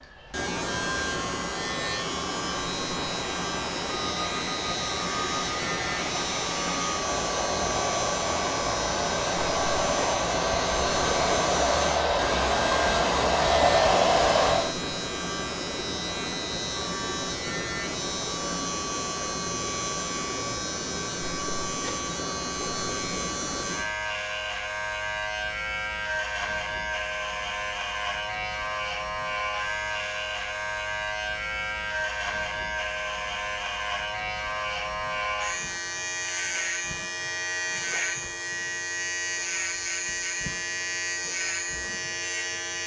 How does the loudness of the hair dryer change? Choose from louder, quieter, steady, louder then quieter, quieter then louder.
louder.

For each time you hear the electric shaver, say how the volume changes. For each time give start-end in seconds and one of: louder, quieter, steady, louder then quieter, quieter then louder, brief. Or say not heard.
0.0-42.8 steady.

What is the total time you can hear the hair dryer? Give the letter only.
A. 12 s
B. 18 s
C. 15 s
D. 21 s
C.